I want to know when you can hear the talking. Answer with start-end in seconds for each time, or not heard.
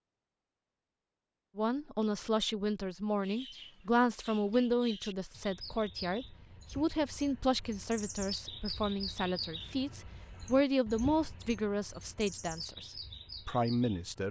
1.6-14.2.